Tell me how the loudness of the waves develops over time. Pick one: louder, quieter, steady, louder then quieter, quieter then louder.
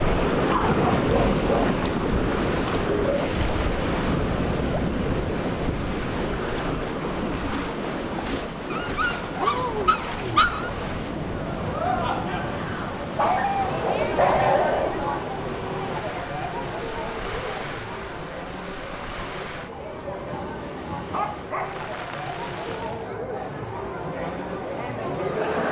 quieter.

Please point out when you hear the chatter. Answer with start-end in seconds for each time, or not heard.
11.3-25.6.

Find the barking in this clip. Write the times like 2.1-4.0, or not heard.
0.7-1.8, 8.7-10.7, 13.2-14.9, 21.1-21.8.